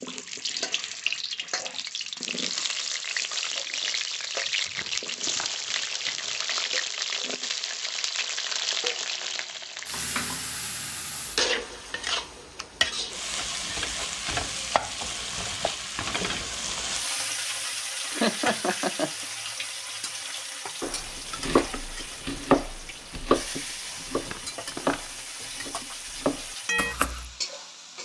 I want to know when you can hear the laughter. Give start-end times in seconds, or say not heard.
18.1-19.3.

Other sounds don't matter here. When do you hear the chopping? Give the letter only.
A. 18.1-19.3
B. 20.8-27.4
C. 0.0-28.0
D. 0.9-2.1
B.